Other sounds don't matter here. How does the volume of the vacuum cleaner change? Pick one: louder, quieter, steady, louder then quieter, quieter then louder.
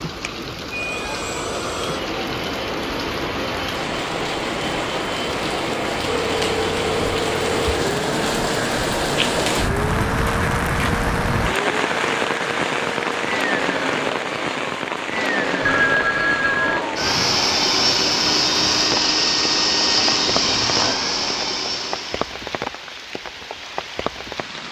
louder.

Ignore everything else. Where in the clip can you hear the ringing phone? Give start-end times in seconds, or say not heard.
6.2-7.9, 15.6-16.8.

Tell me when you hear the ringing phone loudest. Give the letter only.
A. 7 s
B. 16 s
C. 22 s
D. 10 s
B.